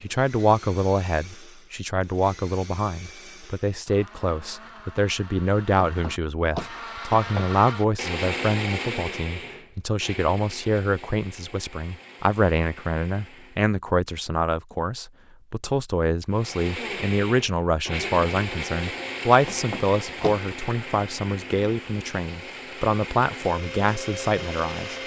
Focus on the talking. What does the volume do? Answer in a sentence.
The volume of the talking stays about the same.